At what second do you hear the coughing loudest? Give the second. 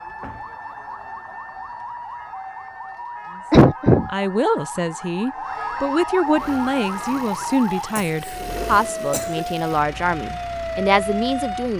4 s.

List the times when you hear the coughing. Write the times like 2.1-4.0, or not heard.
3.5-4.1, 8.0-8.4, 9.1-9.5.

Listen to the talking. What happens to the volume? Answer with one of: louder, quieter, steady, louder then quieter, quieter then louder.
steady.